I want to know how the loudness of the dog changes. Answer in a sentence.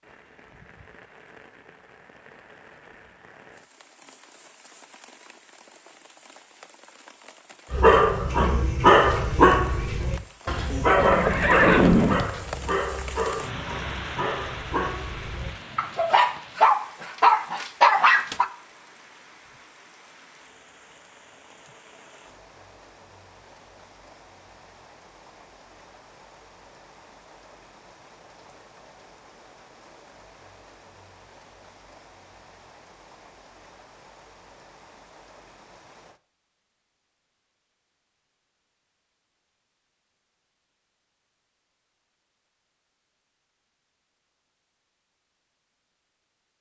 The loudness of the dog goes down, then up.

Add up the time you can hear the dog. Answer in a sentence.
You can hear the dog for 11 seconds altogether.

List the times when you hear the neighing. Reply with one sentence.
You can hear the neighing from 11.0 to 12.2 s.